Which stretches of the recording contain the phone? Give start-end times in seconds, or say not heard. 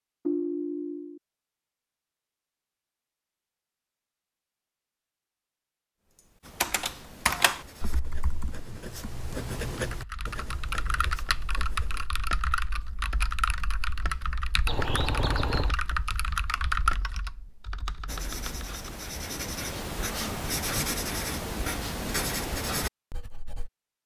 0.2-1.2, 14.7-15.8.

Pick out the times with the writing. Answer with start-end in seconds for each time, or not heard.
6.4-12.1, 18.1-23.7.